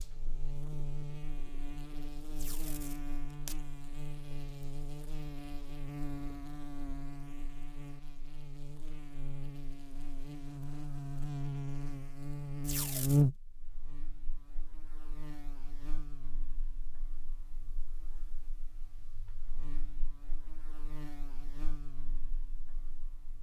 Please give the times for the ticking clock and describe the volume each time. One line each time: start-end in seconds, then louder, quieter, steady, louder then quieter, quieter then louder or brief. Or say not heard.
not heard.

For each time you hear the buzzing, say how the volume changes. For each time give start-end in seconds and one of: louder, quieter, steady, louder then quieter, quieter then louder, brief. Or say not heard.
0.0-23.3 louder then quieter.